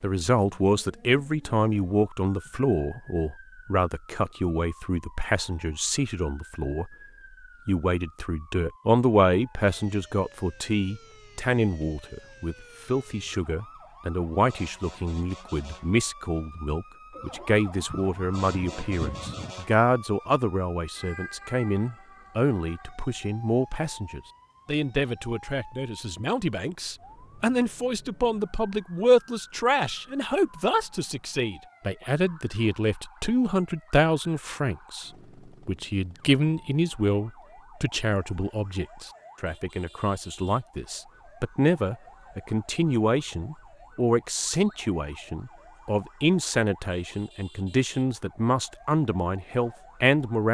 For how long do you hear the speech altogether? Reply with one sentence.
The speech can be heard for 50 seconds in total.